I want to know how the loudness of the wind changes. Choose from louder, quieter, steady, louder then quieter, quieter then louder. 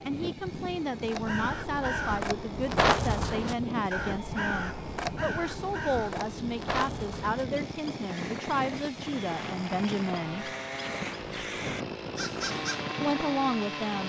steady.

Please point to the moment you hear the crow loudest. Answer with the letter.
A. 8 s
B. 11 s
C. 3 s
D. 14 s
C.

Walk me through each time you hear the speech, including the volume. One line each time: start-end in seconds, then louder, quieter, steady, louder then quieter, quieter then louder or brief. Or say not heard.
0.1-10.5 steady
13.0-14.0 brief.